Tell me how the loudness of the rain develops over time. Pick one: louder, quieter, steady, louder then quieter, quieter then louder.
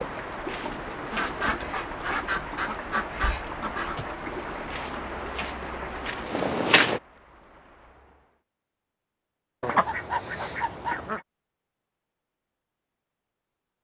quieter.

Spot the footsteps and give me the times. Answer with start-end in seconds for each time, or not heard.
0.0-1.8, 4.2-7.0.